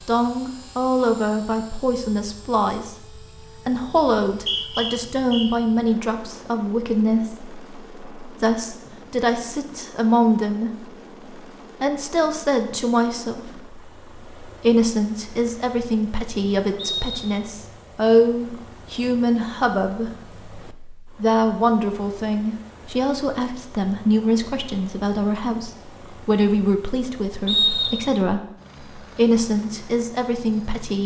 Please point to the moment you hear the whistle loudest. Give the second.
28 s.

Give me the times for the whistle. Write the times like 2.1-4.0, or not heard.
4.3-5.5, 16.8-17.5, 27.4-28.0.